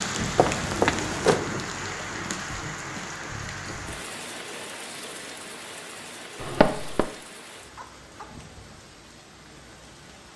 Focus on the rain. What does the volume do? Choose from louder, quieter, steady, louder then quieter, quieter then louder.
quieter.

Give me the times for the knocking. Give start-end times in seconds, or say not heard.
0.3-1.4, 6.4-7.0.